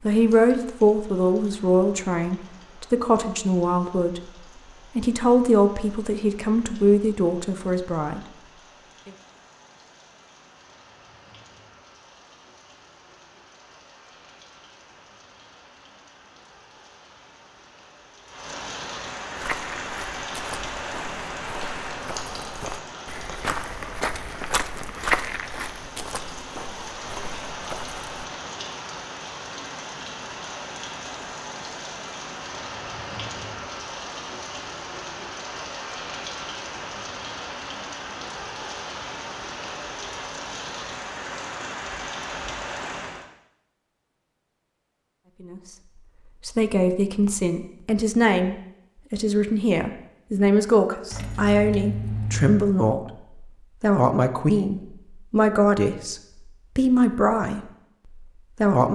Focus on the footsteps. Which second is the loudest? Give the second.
25 s.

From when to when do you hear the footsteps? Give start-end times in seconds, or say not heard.
19.4-28.2.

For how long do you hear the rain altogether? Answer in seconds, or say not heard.
43 s.